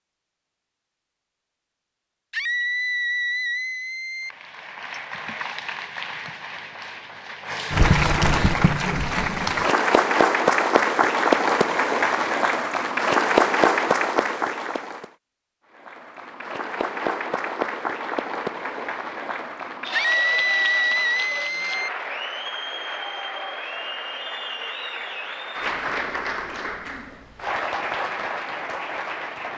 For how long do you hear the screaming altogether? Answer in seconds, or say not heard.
4 s.